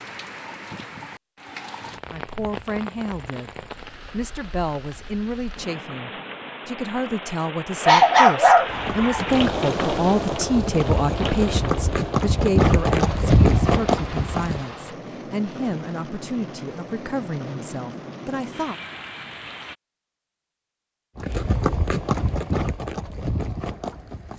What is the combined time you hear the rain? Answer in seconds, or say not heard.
20 s.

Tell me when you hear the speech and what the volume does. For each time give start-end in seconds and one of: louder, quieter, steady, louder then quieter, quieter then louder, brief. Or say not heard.
2.1-18.8 louder then quieter.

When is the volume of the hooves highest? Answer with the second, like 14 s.
13 s.